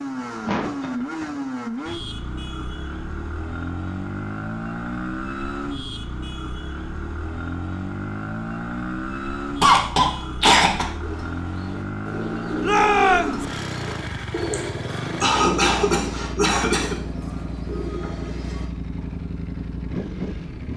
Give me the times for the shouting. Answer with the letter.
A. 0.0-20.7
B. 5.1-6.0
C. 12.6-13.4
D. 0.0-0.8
C.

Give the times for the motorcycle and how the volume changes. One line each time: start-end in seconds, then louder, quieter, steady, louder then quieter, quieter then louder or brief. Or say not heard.
0.0-20.7 steady.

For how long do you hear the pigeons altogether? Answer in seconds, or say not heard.
8 s.